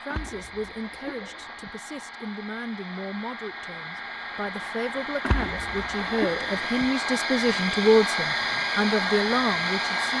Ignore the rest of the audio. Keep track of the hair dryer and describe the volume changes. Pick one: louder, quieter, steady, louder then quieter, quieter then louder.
louder.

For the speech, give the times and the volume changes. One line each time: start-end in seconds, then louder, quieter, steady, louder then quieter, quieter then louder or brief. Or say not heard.
0.1-10.1 louder.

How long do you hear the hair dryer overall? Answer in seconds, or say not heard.
10 s.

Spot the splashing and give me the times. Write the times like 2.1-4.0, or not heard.
0.1-1.8, 5.2-6.9.